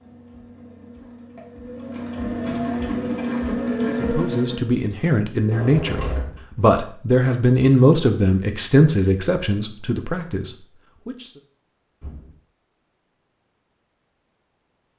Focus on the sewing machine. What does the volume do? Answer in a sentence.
The volume of the sewing machine goes up.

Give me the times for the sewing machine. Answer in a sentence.
You can hear the sewing machine from 0.0 to 4.7 s.